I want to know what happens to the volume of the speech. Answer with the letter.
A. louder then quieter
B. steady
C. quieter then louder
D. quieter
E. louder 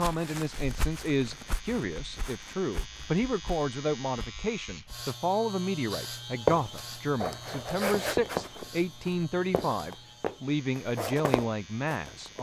B.